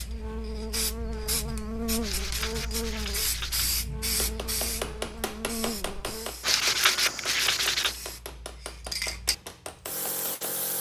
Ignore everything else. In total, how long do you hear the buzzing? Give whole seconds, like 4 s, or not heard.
6 s.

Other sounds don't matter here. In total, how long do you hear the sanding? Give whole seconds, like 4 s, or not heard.
3 s.